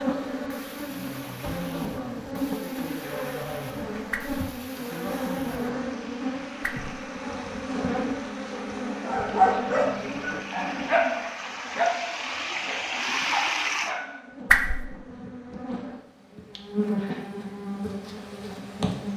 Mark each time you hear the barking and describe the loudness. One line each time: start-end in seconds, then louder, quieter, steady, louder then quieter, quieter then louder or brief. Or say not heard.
9.0-14.2 quieter then louder.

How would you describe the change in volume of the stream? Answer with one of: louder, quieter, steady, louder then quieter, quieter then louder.
louder.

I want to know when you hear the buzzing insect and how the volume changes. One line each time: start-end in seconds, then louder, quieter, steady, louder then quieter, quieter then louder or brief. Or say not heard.
0.0-19.1 quieter then louder.